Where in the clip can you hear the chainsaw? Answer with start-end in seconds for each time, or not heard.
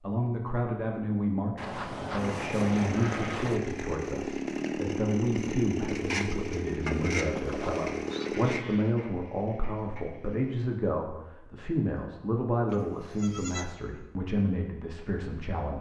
2.1-10.6.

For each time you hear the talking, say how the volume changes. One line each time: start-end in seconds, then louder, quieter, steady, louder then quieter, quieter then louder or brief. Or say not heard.
0.0-15.7 steady.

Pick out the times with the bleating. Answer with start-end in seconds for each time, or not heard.
1.6-3.6, 7.3-8.9, 12.7-13.7.